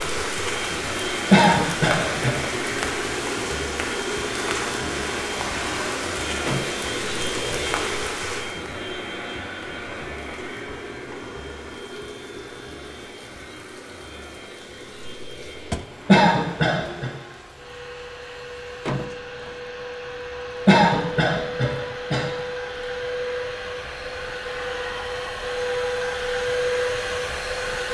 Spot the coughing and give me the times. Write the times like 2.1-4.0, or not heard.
1.3-2.4, 16.1-17.1, 20.6-22.2.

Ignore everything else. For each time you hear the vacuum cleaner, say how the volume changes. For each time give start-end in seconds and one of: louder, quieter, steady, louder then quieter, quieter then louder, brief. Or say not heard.
0.0-27.8 quieter then louder.